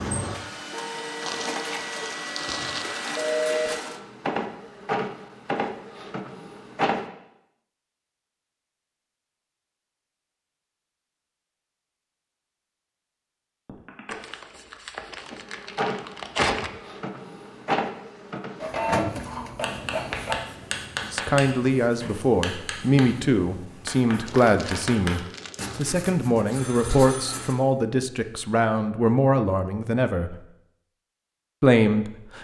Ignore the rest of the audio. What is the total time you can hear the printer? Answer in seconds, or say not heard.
12 s.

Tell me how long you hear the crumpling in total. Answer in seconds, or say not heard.
6 s.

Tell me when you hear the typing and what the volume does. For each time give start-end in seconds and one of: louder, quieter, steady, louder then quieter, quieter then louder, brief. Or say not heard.
not heard.